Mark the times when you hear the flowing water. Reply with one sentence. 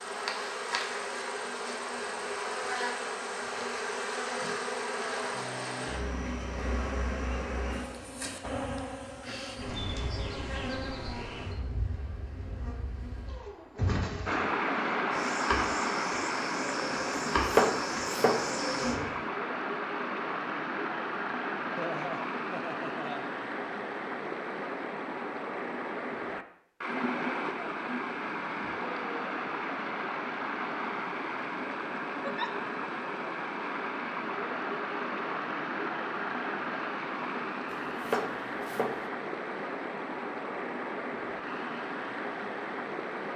You can hear the flowing water from 14.2 to 43.3 s.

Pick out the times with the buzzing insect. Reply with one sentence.
You can hear the buzzing insect from 0.0 to 19.2 s.